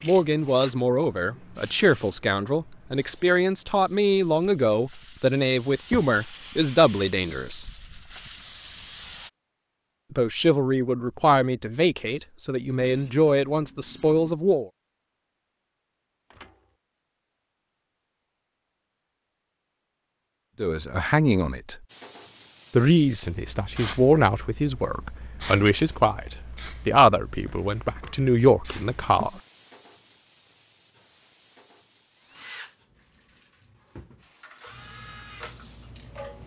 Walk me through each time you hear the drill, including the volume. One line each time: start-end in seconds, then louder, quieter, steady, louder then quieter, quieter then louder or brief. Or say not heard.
32.1-36.4 quieter then louder.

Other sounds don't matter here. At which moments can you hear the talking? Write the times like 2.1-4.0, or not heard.
0.0-7.7, 10.1-14.7, 20.6-21.8, 22.7-29.4.